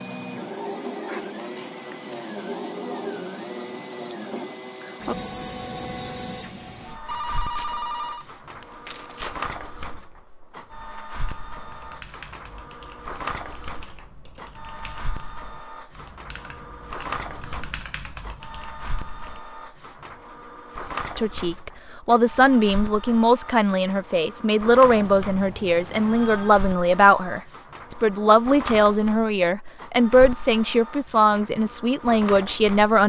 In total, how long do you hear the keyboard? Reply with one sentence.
The keyboard can be heard for 8 seconds in total.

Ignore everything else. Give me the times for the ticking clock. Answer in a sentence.
The ticking clock can't be heard in this clip.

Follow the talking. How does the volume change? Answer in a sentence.
The volume of the talking stays about the same.